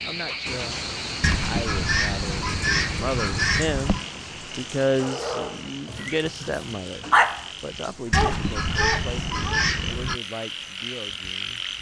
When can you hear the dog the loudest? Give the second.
7 s.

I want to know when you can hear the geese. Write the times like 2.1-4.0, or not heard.
1.2-4.0, 8.1-10.2.